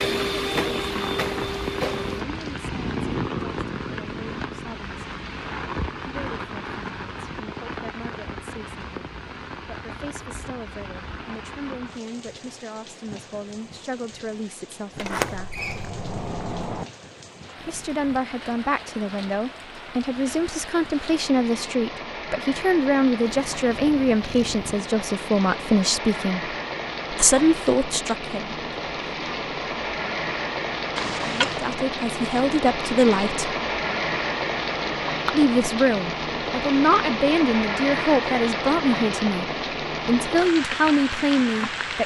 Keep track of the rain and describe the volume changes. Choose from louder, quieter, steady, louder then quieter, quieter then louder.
quieter then louder.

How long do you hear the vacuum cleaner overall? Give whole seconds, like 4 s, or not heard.
2 s.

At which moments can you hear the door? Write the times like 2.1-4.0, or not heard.
14.9-16.9, 30.9-31.7.